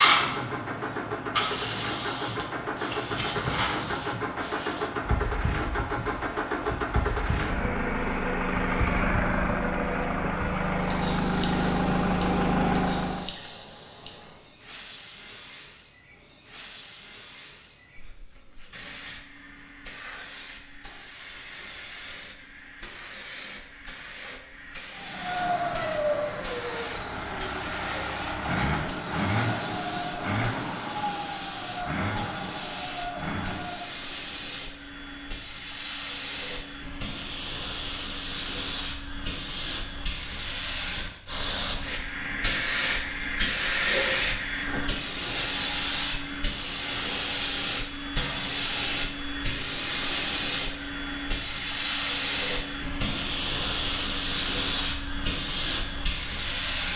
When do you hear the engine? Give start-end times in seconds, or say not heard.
0.0-13.3, 24.9-34.0.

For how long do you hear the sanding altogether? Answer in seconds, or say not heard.
not heard.